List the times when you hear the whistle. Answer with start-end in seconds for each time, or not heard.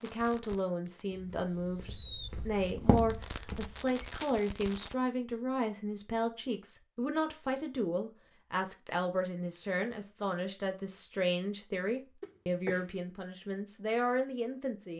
not heard.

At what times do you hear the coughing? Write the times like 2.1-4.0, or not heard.
12.2-13.0.